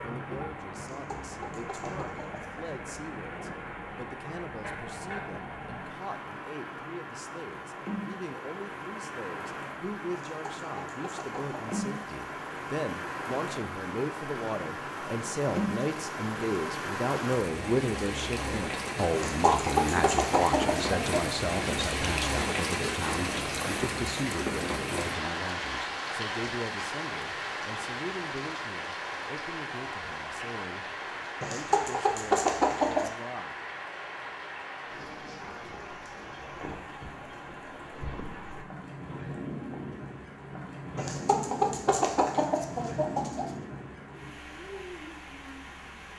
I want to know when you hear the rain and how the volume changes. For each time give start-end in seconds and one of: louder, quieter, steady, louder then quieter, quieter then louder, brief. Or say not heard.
0.0-46.1 louder then quieter.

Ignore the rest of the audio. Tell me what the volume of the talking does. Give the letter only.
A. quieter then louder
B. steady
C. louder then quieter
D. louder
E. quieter
C.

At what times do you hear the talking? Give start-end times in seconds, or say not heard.
0.0-33.5.